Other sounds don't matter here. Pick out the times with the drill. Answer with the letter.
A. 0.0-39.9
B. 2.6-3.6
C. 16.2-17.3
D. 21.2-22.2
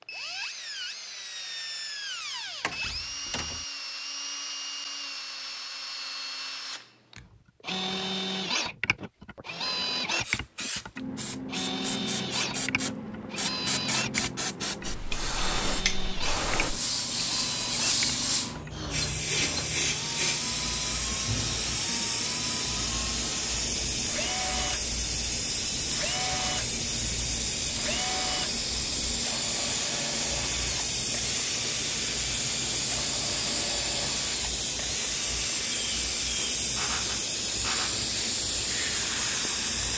A.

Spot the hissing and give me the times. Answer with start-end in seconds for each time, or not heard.
10.2-39.9.